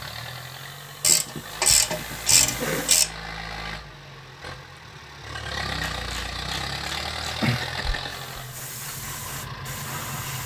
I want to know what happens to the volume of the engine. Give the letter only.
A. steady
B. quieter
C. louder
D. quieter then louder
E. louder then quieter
E.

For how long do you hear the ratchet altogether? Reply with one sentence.
The ratchet can be heard for 4 seconds in total.